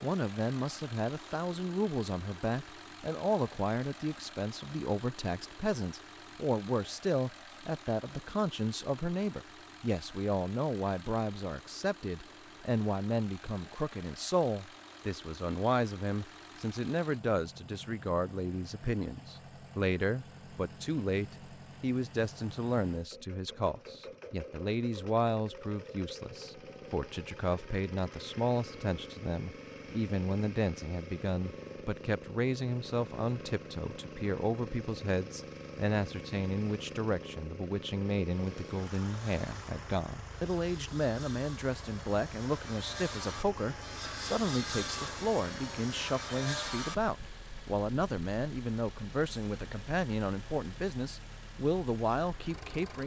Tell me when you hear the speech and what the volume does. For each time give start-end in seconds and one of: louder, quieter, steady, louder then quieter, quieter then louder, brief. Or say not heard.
0.0-53.0 steady.